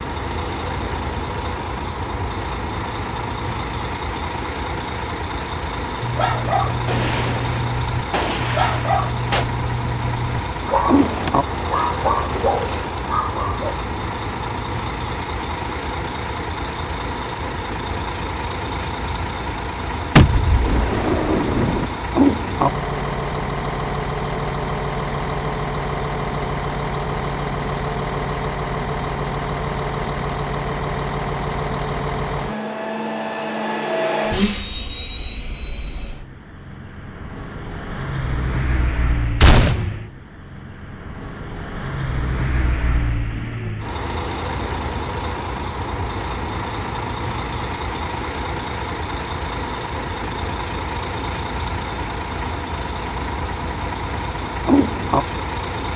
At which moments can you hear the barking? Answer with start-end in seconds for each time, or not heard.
6.0-13.8.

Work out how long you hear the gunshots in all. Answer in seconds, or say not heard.
5 s.